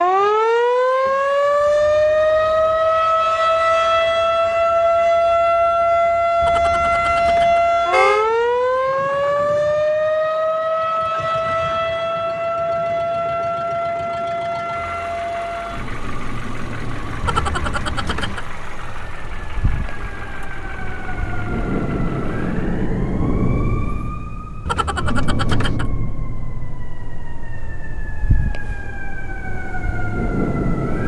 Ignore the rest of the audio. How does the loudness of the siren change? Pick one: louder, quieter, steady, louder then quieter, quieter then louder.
quieter.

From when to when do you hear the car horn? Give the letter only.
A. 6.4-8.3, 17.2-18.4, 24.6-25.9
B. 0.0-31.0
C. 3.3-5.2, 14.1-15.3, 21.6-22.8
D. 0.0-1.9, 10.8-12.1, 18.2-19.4
A.